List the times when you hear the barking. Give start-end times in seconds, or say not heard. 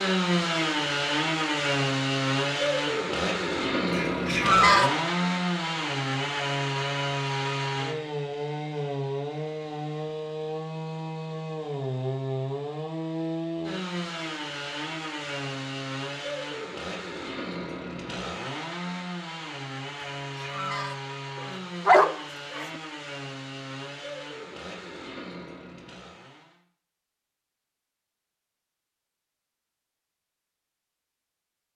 21.4-22.6.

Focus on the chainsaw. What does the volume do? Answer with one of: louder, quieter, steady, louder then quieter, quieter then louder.
quieter.